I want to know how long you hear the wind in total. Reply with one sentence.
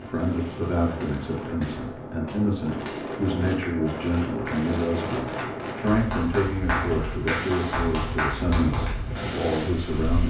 The wind can be heard for 10 seconds in total.